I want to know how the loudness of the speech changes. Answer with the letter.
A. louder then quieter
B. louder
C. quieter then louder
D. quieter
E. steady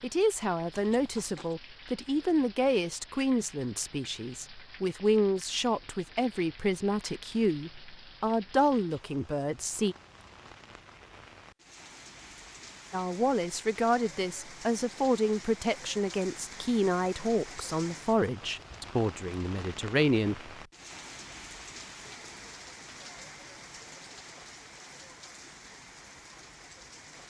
E.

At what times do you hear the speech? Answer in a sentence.
The speech can be heard from 0.0 to 9.9 s and from 12.9 to 20.5 s.